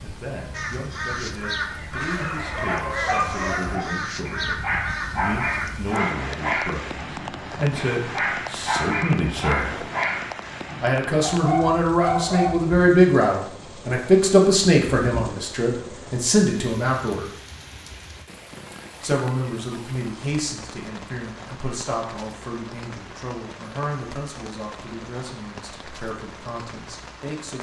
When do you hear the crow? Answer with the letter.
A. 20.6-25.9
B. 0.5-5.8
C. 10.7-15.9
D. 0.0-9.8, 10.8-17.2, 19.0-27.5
B.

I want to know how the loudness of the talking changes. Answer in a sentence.
The loudness of the talking goes up, then down.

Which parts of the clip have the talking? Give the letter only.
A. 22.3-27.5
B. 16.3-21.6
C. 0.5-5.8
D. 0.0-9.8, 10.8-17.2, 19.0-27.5
D.